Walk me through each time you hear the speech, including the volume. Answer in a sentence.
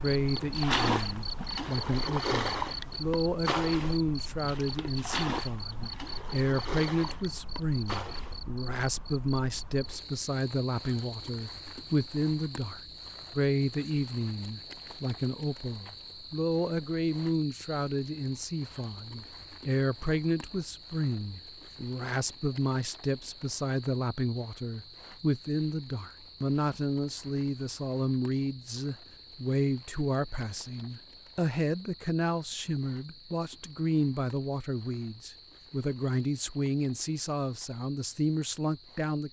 You can hear the speech from 0.0 to 39.2 s, at a steady volume.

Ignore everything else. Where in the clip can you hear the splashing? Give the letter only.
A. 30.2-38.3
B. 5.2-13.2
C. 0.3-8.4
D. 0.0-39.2
C.